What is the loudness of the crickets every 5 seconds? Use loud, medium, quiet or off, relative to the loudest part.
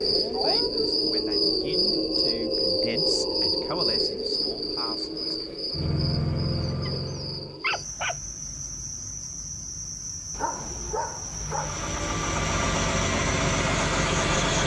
loud, medium, medium.